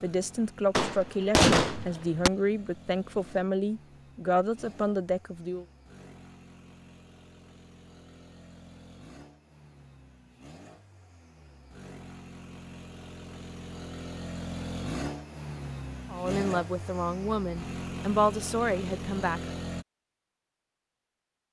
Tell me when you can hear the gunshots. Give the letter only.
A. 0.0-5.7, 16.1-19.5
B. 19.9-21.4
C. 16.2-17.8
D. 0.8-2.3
D.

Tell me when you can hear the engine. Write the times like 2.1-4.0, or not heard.
0.0-19.9.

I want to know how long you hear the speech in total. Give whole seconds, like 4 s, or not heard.
9 s.